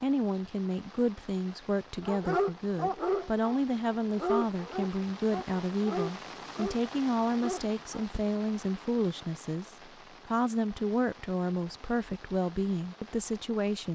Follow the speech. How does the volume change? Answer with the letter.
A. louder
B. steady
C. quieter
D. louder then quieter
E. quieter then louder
B.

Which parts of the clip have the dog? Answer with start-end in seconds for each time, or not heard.
2.0-8.2.